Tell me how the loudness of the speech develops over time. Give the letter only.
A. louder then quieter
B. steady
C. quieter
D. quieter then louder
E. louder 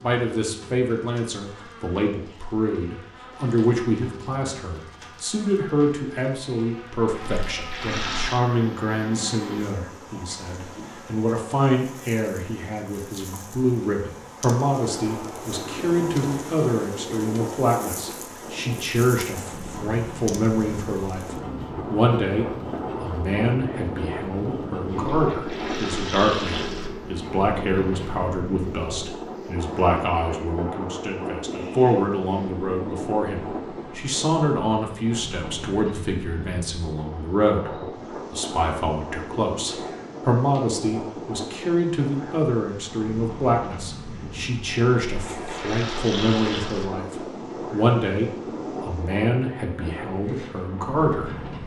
B.